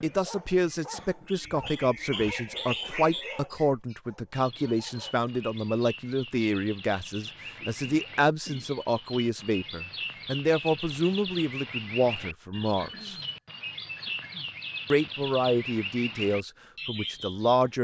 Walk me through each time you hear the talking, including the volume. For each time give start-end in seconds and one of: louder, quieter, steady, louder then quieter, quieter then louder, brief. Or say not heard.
0.0-13.2 steady
14.9-17.7 brief.